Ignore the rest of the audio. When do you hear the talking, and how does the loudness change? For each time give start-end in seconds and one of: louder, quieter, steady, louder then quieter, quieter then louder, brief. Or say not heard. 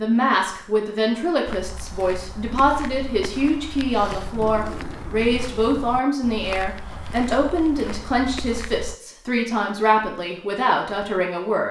0.0-11.6 steady.